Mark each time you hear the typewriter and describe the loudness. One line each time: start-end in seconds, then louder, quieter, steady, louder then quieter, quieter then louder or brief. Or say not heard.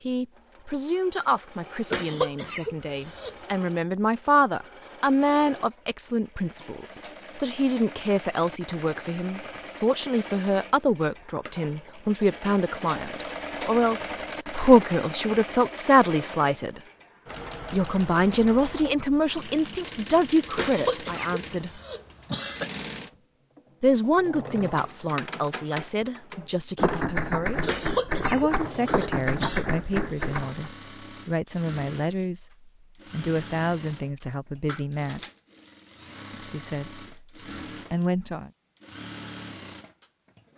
24.6-30.6 louder.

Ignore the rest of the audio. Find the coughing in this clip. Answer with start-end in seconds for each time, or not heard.
1.9-3.4, 20.6-22.7, 27.6-29.6.